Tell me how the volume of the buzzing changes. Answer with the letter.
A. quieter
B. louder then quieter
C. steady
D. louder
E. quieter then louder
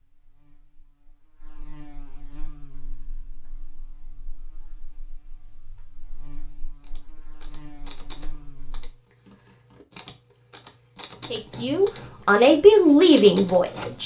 E.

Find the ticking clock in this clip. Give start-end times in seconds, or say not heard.
not heard.